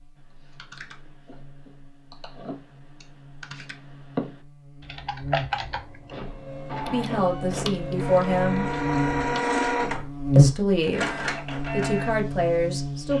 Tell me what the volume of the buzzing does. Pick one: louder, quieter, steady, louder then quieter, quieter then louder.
louder.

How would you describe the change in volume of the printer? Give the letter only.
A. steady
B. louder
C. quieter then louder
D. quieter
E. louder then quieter
E.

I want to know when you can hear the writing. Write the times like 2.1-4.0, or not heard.
not heard.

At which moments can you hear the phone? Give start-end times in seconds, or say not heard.
not heard.